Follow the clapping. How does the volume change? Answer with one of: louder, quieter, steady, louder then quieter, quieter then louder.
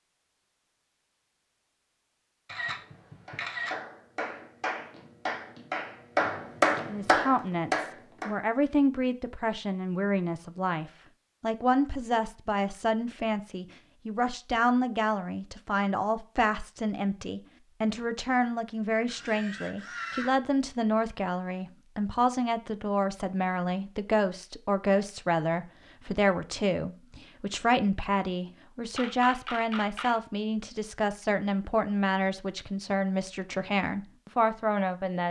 louder.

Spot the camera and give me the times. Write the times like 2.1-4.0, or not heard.
2.5-3.8, 19.1-20.3, 28.9-30.1.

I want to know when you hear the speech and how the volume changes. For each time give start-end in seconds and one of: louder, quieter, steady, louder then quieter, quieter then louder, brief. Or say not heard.
6.8-35.2 steady.